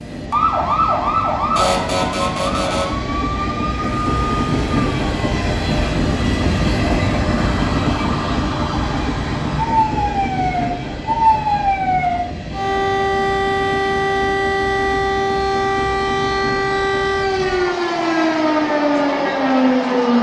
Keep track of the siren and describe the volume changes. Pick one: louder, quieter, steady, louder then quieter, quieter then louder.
quieter then louder.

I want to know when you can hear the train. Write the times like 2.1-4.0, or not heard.
0.0-20.1.